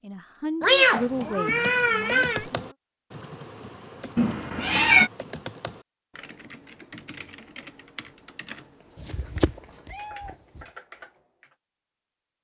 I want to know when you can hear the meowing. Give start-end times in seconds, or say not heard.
0.6-2.5, 4.2-5.1, 9.0-10.6.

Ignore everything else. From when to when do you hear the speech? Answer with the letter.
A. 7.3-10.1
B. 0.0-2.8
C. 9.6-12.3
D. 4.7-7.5
B.